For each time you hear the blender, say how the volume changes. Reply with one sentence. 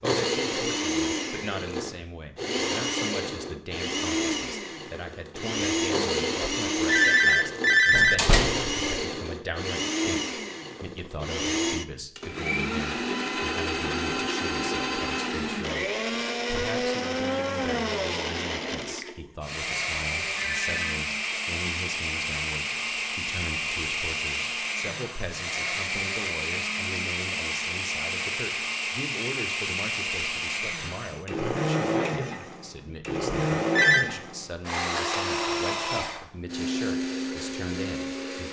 The blender can be heard from 0.0 to 38.4 s, at a steady volume.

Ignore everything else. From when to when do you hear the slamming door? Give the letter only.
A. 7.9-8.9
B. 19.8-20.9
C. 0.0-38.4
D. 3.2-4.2
A.